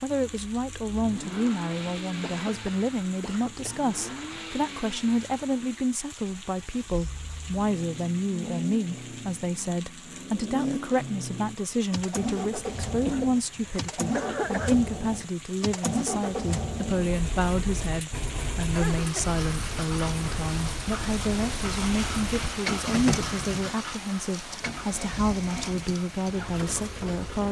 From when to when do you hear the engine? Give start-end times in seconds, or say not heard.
0.0-27.4.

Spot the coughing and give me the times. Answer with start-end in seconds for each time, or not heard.
2.2-3.9, 13.1-14.8, 18.6-19.4.